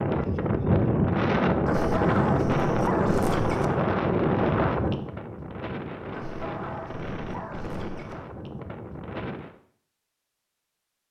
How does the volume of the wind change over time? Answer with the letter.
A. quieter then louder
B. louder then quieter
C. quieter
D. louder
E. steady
C.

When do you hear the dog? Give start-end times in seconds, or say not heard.
1.6-3.6, 6.1-8.2.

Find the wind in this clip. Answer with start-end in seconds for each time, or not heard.
0.0-9.6.